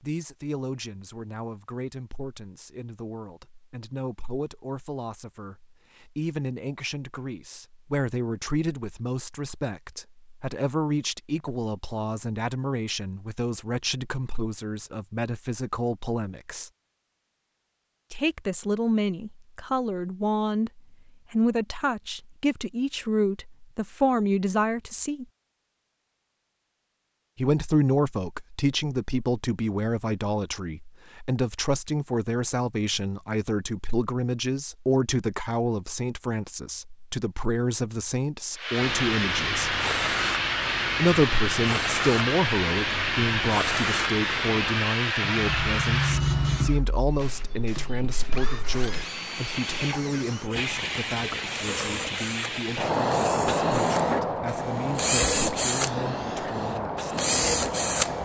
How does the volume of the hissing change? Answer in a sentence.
The volume of the hissing goes down, then up.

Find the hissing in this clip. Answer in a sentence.
The hissing can be heard from 38.5 to 58.1 s.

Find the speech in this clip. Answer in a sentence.
The speech can be heard from 0.0 to 16.7 s, from 18.1 to 25.2 s, from 27.4 to 39.8 s and from 41.0 to 57.1 s.